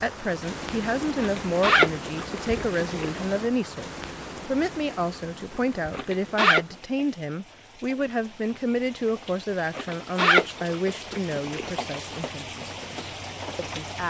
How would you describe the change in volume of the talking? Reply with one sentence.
The loudness of the talking goes down.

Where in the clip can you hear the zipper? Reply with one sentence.
You can hear the zipper from 1.1 to 3.1 s, from 5.9 to 6.7 s and from 9.8 to 11.7 s.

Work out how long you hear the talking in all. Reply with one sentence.
You can hear the talking for 14 seconds altogether.